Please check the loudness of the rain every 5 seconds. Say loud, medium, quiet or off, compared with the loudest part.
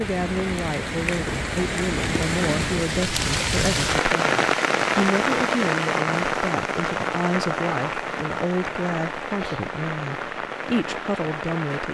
loud, loud, medium.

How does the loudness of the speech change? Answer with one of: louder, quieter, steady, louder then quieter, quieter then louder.
steady.